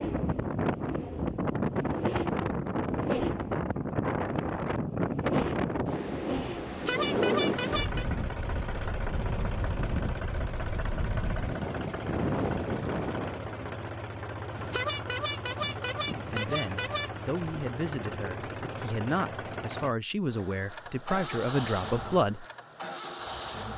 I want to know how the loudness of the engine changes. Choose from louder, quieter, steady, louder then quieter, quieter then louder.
steady.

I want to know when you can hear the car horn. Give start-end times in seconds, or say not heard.
6.7-8.1, 14.5-17.1.